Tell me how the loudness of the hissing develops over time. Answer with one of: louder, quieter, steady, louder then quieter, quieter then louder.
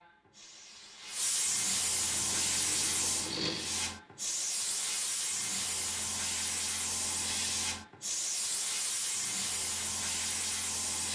steady.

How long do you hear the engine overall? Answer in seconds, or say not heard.
2 s.